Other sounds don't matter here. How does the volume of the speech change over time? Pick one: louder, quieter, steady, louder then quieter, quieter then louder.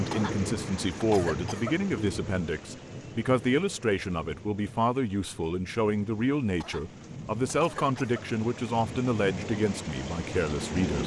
steady.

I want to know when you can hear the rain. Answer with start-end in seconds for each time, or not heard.
0.0-11.0.